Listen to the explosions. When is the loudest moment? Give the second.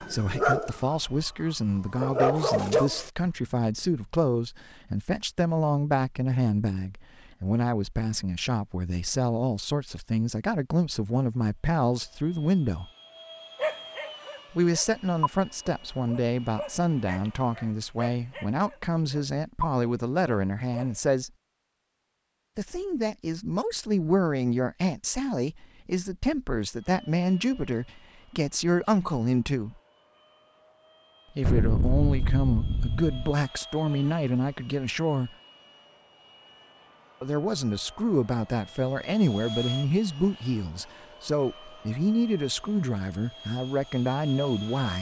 32 s.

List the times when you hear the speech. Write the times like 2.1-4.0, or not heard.
0.0-12.9, 14.5-21.3, 22.6-29.8, 31.4-35.3, 37.2-44.9.